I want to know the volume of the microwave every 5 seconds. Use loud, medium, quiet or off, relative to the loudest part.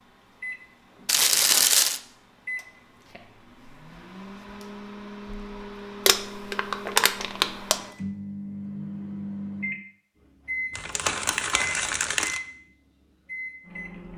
medium, loud, loud.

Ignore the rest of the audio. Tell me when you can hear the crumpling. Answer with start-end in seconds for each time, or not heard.
1.1-2.0, 6.0-7.8, 10.8-12.4.